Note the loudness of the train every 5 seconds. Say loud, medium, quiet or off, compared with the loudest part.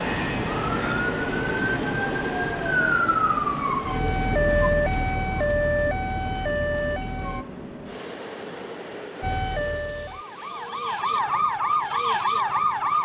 loud, medium, quiet.